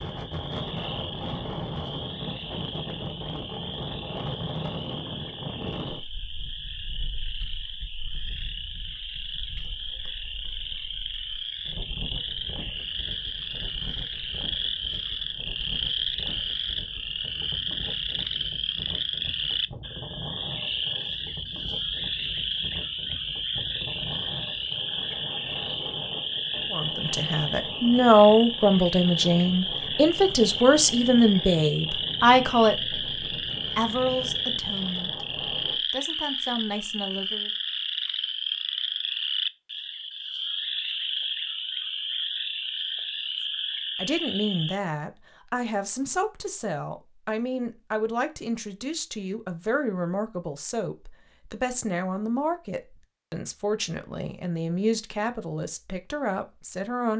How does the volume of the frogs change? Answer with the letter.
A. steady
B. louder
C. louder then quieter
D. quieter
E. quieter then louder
B.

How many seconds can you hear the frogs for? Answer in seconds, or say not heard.
45 s.